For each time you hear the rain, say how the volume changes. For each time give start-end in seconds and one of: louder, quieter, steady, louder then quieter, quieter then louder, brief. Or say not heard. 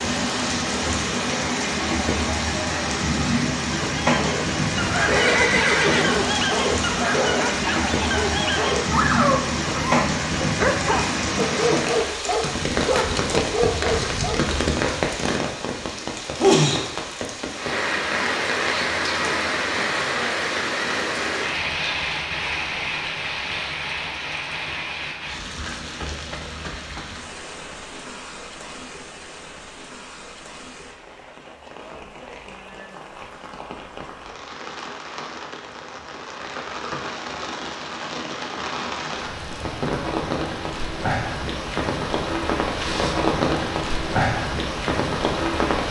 0.0-45.8 quieter then louder.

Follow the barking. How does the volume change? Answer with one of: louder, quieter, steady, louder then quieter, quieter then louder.
steady.